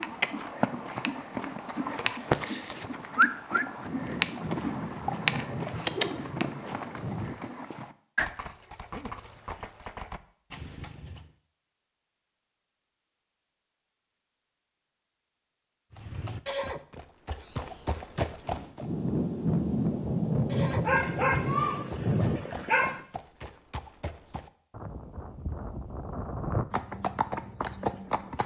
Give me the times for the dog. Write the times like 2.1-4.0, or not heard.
20.9-23.0.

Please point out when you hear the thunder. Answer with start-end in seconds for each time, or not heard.
3.8-7.3, 18.8-22.4.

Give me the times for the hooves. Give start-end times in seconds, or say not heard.
0.0-11.3, 15.9-18.9, 20.5-28.4.